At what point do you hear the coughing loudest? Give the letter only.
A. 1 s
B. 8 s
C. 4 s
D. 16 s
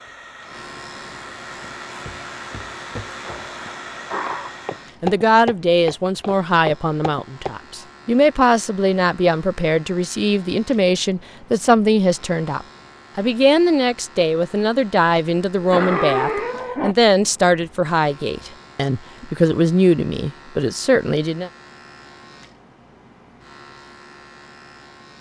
D.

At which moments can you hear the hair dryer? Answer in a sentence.
The hair dryer can be heard from 0.0 to 5.0 s.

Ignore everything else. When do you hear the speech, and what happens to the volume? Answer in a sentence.
The speech can be heard from 5.0 to 21.5 s, at a steady volume.